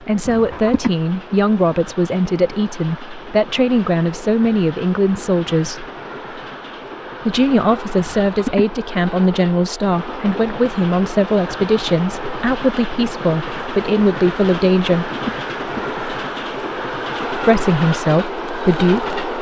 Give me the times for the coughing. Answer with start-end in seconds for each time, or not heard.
0.2-0.9, 8.0-8.7, 15.1-15.8.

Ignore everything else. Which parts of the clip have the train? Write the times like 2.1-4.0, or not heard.
0.0-19.3.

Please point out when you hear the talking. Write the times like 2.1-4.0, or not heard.
0.1-5.8, 7.2-15.1, 17.4-19.1.